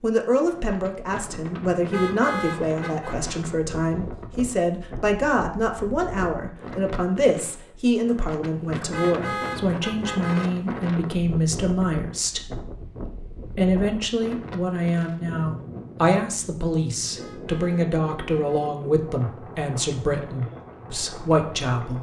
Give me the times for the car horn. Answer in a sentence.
You can hear the car horn from 1.9 to 3.2 s, from 8.9 to 10.5 s and from 17.1 to 18.8 s.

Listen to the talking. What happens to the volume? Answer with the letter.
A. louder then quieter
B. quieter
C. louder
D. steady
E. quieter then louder
D.